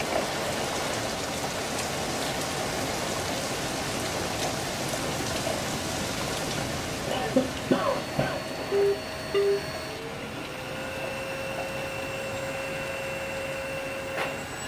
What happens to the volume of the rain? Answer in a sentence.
The loudness of the rain goes down.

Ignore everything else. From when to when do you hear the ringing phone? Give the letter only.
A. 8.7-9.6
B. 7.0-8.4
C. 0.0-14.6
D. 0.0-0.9
A.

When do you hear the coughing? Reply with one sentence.
The coughing can be heard from 7.0 to 8.4 s.